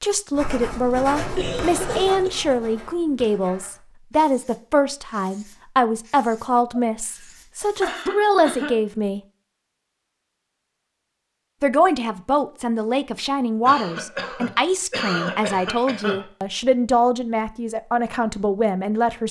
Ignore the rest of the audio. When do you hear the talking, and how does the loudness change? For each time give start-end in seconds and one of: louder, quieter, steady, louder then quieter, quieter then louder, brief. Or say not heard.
0.0-9.2 steady
11.6-19.2 steady.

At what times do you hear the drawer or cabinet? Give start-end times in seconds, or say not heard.
not heard.